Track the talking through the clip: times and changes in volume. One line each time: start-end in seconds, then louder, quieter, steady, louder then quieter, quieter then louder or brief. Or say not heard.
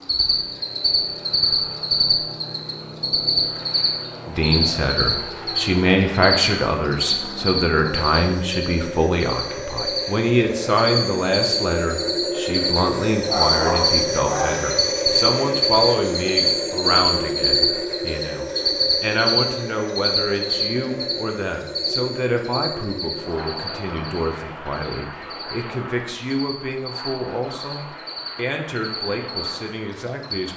4.2-30.5 quieter.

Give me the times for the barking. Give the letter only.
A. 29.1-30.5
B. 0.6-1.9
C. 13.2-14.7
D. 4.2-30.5
C.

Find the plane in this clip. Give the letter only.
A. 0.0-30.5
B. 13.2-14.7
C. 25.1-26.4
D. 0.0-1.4
A.